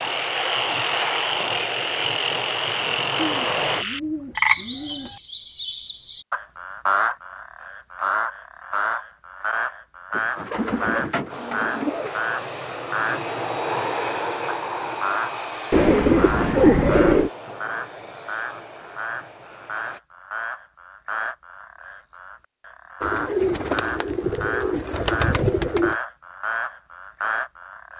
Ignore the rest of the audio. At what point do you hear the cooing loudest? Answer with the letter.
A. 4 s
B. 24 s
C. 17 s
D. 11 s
C.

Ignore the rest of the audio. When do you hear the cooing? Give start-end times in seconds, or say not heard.
3.1-5.2, 10.1-12.1, 15.7-17.3, 23.0-25.9.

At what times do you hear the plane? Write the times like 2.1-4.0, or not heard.
0.0-3.9, 11.2-20.0.